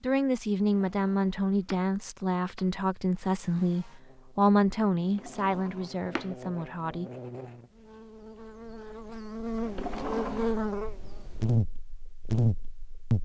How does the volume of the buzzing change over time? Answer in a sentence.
The loudness of the buzzing goes up.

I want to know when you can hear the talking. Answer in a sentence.
The talking can be heard from 0.0 to 7.1 s.